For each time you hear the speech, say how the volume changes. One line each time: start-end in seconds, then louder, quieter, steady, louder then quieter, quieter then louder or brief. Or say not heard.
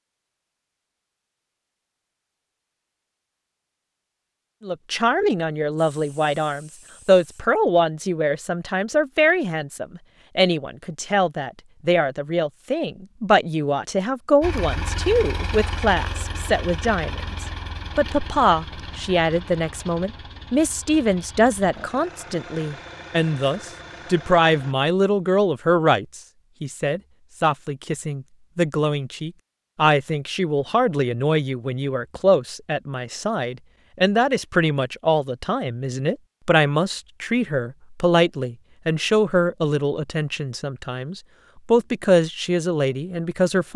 4.7-43.7 steady.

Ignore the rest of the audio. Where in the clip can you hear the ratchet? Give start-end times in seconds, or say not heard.
not heard.